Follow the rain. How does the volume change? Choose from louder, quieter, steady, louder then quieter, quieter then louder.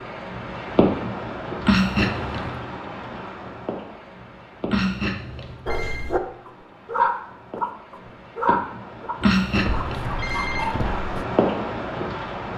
quieter then louder.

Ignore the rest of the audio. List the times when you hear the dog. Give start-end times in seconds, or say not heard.
5.7-11.2.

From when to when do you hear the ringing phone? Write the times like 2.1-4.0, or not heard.
1.6-2.6, 4.7-6.0, 9.2-10.7.